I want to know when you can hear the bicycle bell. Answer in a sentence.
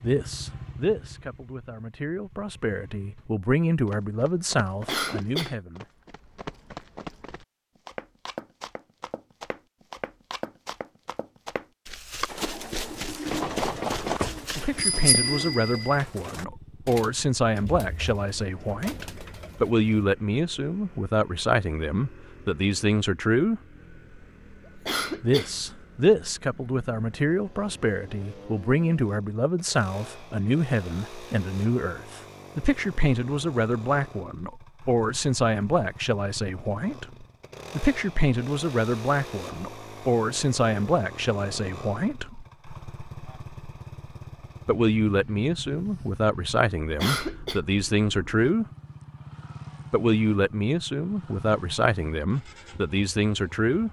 The bicycle bell can be heard from 13.2 to 15.9 s.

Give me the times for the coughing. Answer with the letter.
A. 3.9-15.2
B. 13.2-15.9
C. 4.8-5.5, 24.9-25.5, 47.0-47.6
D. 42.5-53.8
C.